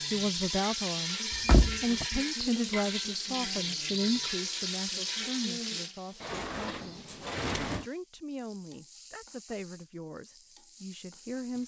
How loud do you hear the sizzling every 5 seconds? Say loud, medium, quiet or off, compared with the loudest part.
loud, medium, quiet.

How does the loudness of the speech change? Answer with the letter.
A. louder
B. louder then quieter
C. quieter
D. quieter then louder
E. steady
C.